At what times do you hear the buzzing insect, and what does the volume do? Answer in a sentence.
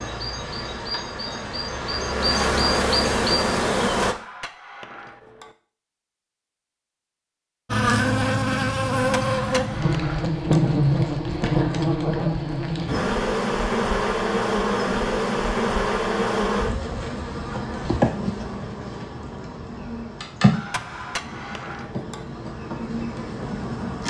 You can hear the buzzing insect from 0.0 to 4.2 s, getting louder; and from 7.7 to 24.0 s, getting quieter.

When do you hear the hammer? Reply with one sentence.
The hammer can be heard from 4.0 to 5.5 s, from 8.9 to 10.4 s and from 20.5 to 22.2 s.